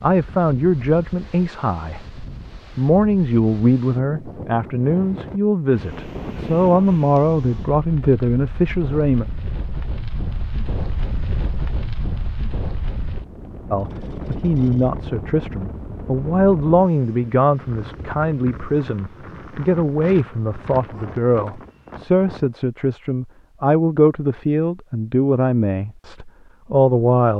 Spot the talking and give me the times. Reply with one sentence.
You can hear the talking from 0.0 to 9.2 s and from 13.7 to 27.3 s.